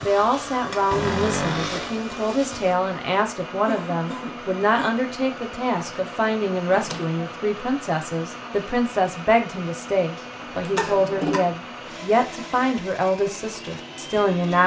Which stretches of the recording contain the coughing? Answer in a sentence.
The coughing can be heard from 3.6 to 5.0 s and from 10.2 to 11.4 s.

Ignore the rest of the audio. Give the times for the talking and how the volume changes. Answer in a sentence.
The talking can be heard from 0.1 to 14.6 s, at a steady volume.